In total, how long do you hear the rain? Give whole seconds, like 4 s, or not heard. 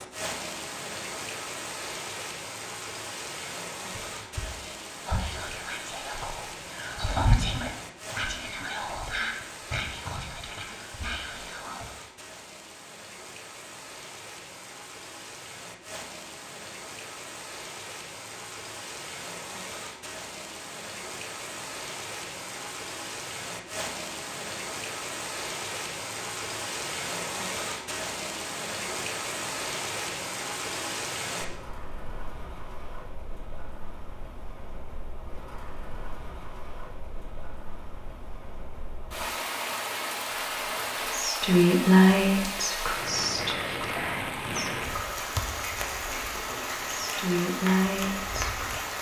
49 s.